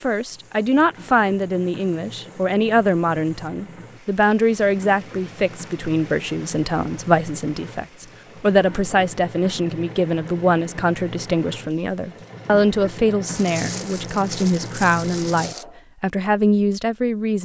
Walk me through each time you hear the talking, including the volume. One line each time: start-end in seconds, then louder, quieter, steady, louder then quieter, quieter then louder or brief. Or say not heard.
0.0-17.4 steady.